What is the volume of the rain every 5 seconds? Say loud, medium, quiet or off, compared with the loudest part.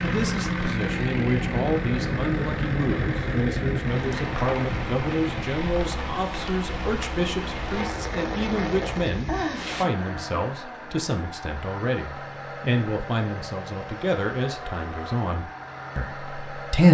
loud, loud, off, off.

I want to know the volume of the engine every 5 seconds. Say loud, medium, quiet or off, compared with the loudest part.
loud, medium, medium, medium.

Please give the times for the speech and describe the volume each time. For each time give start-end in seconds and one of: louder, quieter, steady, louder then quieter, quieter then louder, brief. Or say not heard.
0.0-16.8 steady.